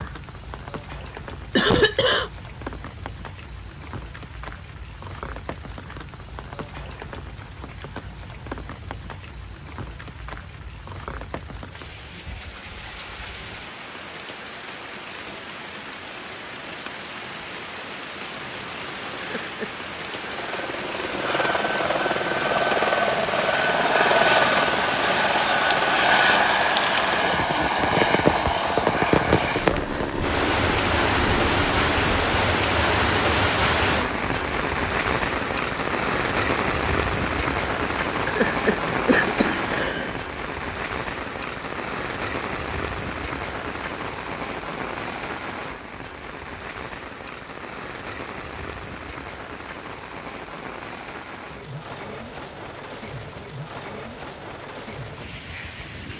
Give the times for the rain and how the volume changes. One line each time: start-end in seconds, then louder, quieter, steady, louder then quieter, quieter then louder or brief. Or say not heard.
0.0-56.1 louder then quieter.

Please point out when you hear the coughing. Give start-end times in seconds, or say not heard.
1.6-2.3, 19.2-19.8, 38.2-40.2.